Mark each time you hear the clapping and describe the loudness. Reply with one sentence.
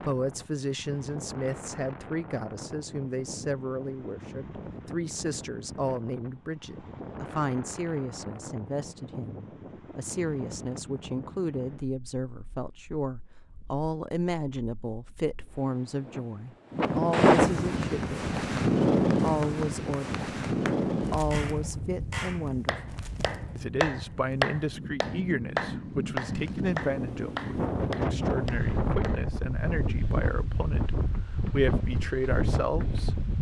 You can hear the clapping from 17.8 to 29.2 s, getting louder then quieter.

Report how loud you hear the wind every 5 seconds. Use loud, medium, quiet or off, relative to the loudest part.
quiet, quiet, quiet, loud, medium, medium, medium.